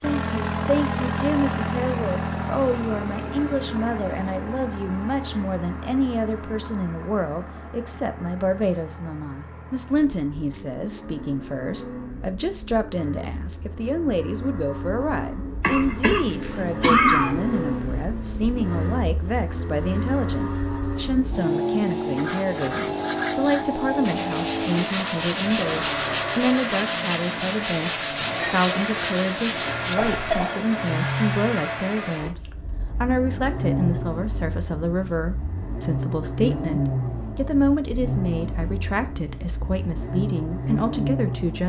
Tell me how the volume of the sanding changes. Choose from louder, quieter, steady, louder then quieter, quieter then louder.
steady.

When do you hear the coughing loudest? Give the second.
17 s.